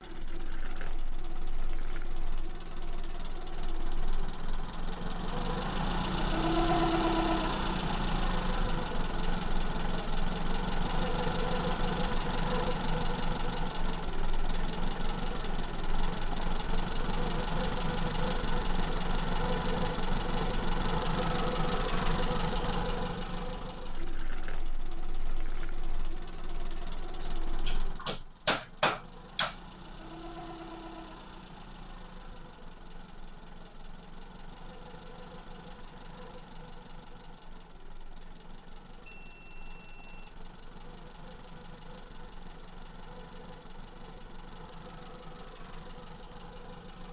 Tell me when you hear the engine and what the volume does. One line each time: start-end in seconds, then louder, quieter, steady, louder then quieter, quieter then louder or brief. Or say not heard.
0.0-47.0 quieter.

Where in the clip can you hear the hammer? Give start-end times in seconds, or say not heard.
27.2-29.6.